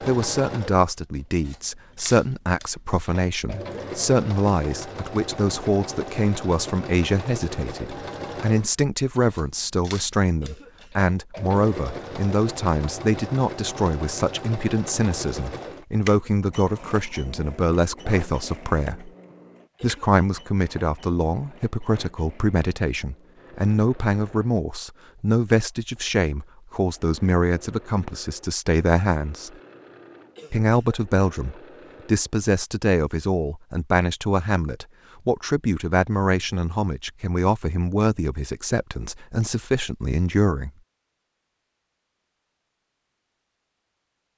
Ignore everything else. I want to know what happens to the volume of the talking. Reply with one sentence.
The volume of the talking stays about the same.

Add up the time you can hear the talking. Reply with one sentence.
You can hear the talking for 39 seconds altogether.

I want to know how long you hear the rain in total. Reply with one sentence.
You can't hear the rain here.